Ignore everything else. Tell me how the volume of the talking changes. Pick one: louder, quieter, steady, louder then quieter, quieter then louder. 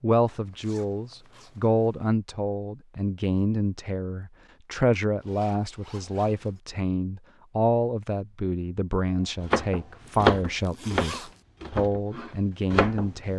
steady.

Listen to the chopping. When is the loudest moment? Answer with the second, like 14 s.
10 s.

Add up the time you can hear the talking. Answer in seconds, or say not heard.
13 s.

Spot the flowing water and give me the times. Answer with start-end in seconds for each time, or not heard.
not heard.